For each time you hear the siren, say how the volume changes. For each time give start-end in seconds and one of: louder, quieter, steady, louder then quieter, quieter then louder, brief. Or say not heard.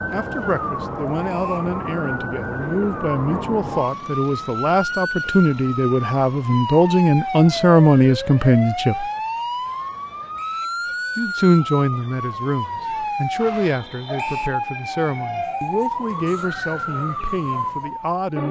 0.0-18.4 steady.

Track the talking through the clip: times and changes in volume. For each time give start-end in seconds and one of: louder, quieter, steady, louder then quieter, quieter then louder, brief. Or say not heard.
0.1-9.1 louder
11.2-18.4 quieter.